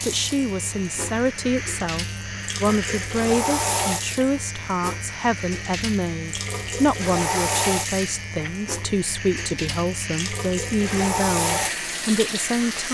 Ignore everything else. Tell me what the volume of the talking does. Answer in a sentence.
The volume of the talking stays about the same.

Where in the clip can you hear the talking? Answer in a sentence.
The talking can be heard from 0.0 to 12.8 s.